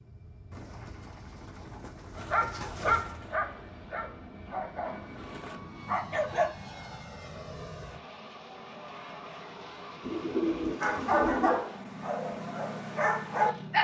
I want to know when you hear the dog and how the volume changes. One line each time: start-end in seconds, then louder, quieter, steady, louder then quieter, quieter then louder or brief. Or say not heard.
2.1-6.5 quieter then louder
10.8-13.7 brief.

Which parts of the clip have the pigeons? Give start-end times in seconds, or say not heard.
0.5-3.2, 10.0-11.8.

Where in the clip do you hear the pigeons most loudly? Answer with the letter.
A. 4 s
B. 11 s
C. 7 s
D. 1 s
B.